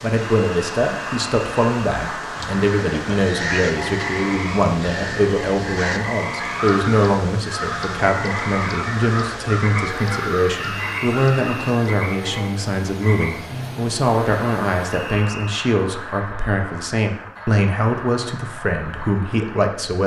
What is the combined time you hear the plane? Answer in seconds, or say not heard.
not heard.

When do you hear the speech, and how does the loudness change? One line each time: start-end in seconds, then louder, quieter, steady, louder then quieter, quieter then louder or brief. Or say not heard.
0.0-20.0 steady.